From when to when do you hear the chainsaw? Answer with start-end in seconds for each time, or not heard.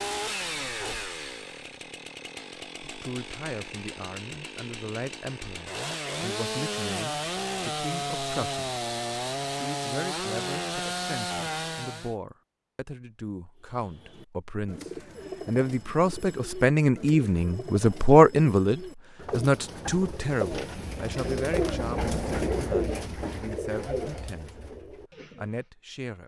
0.0-12.2.